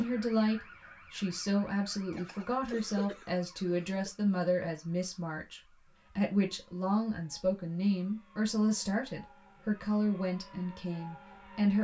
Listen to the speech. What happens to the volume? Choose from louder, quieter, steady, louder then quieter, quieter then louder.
steady.